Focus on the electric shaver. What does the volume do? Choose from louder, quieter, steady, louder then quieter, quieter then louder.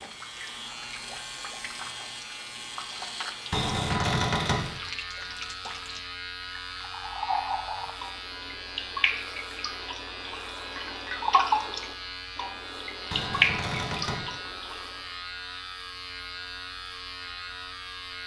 steady.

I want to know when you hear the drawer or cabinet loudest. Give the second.
4 s.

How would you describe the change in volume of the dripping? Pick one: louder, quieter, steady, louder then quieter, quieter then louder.
louder.